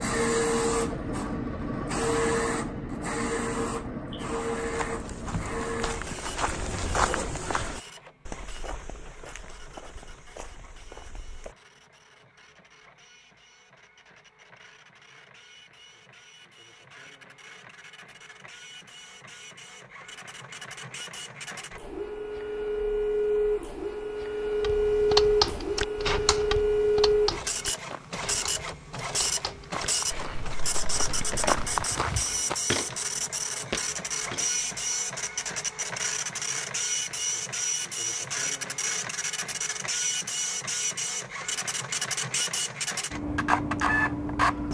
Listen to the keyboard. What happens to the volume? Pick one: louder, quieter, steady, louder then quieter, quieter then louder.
quieter.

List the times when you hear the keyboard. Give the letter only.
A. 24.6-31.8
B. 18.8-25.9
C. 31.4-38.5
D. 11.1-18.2
A.